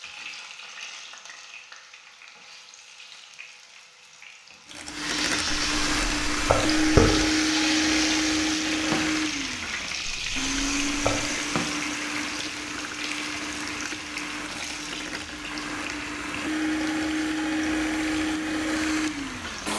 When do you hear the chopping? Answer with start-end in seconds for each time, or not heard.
not heard.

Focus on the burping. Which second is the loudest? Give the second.
7 s.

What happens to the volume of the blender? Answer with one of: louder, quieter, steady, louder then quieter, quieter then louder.
quieter then louder.